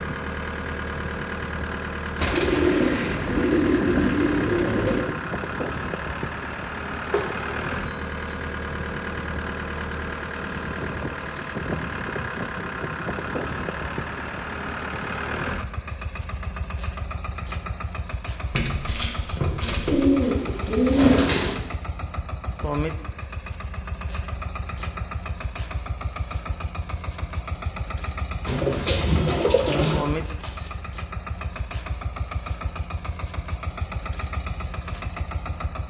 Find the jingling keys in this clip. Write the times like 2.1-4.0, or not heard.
7.0-8.7, 18.5-20.1, 30.4-30.8.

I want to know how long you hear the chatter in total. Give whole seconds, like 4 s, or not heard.
not heard.